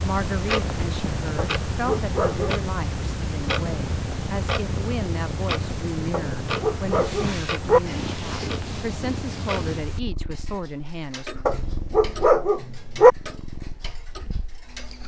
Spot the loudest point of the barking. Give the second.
13 s.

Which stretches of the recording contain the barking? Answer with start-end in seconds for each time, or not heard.
1.4-2.6, 6.1-7.8, 11.4-13.1.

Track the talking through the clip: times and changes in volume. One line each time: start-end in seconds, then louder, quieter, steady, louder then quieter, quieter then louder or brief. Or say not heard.
0.0-11.4 steady.